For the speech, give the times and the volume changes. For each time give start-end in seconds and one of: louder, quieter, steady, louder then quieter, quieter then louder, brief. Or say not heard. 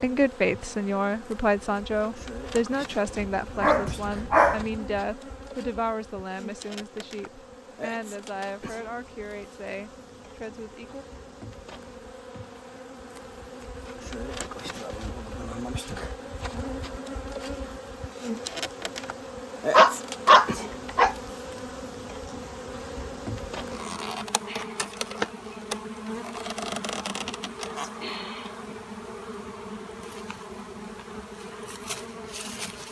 0.0-11.1 quieter.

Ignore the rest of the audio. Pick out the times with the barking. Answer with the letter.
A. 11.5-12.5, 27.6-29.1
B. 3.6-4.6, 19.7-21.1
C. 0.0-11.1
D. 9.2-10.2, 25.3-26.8
B.